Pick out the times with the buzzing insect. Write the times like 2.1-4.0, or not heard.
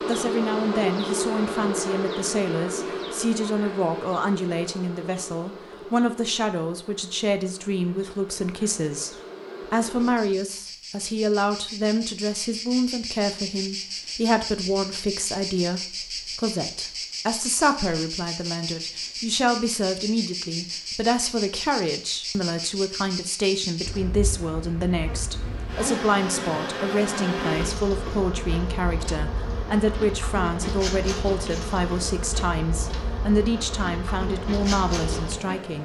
0.0-35.8.